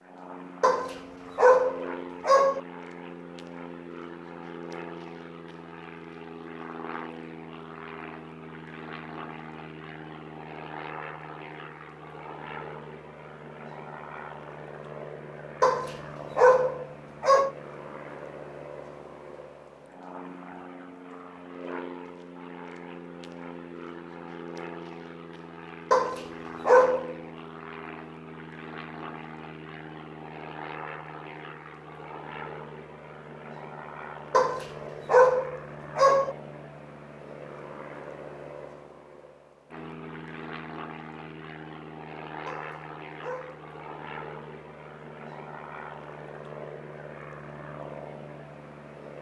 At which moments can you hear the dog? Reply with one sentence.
You can hear the dog from 0.6 to 2.6 s, from 15.6 to 17.5 s, from 25.9 to 27.1 s, from 34.3 to 36.4 s and from 42.5 to 43.7 s.